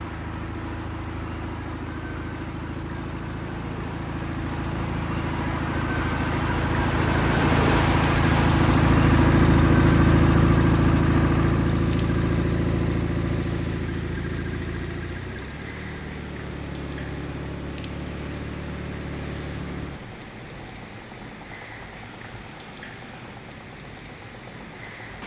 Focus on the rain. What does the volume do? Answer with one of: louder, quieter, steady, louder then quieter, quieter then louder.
louder then quieter.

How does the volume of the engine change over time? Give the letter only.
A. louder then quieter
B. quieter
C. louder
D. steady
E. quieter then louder
A.